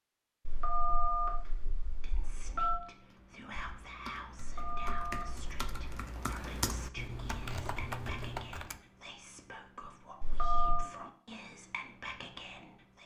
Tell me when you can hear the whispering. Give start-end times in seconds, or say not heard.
2.0-13.0.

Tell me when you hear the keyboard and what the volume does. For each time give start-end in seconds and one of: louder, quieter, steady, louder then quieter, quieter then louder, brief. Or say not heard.
3.1-8.8 louder.